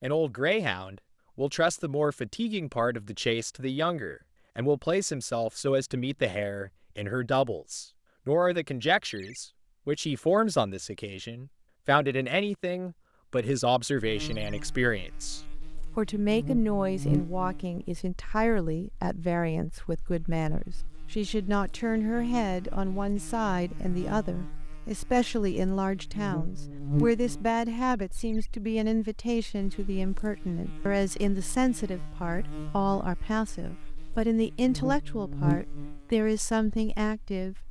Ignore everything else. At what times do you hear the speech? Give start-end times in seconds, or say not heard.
0.0-37.5.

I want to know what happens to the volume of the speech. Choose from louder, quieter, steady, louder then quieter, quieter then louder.
steady.